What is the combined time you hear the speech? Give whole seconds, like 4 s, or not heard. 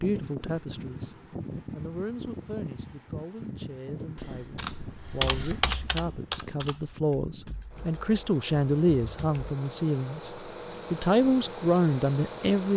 12 s.